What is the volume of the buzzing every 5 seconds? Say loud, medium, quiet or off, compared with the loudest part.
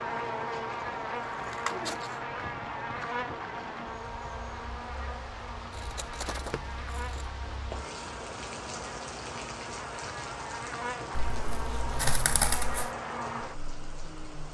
loud, medium, loud.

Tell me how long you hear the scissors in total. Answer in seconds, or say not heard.
4 s.